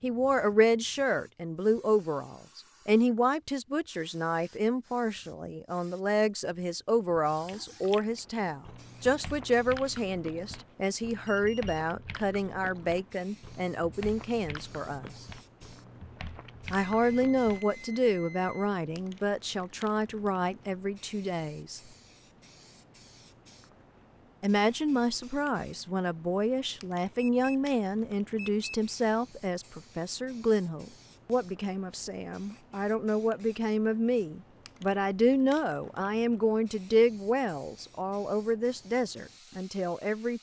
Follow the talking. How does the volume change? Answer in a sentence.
The loudness of the talking stays about the same.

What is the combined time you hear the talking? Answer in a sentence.
The talking can be heard for 36 seconds in total.